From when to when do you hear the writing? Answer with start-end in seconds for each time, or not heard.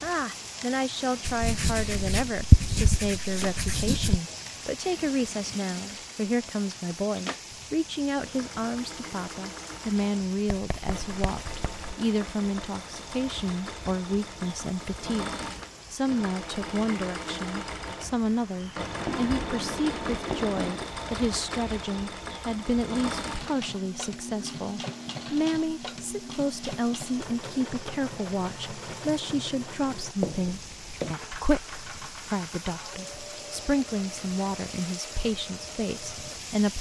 1.2-4.2, 10.5-11.9, 18.9-20.9, 30.2-31.1.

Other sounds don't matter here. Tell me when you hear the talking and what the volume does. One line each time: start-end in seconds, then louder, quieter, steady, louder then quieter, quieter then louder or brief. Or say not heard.
0.0-36.7 steady.